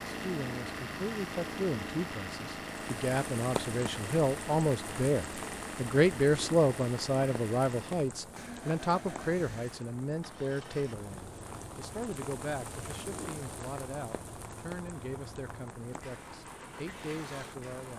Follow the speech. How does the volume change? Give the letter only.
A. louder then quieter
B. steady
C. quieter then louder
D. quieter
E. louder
A.